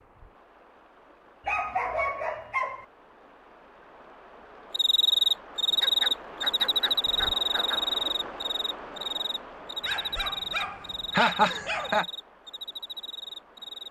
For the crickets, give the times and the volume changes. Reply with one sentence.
You can hear the crickets from 4.7 to 13.8 s, getting quieter.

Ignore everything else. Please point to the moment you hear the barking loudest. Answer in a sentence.
The volume of the barking peaks at 2 seconds.